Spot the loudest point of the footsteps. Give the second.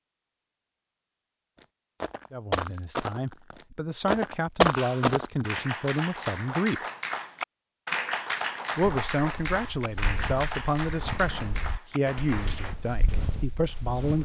5 s.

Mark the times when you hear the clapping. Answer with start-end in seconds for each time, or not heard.
4.8-12.8.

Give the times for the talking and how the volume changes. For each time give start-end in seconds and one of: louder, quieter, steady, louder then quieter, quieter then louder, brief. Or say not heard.
2.3-6.8 louder
8.8-14.1 steady.